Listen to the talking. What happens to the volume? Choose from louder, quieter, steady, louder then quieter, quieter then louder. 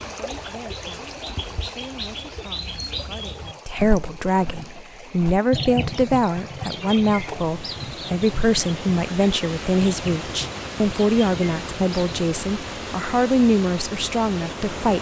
louder.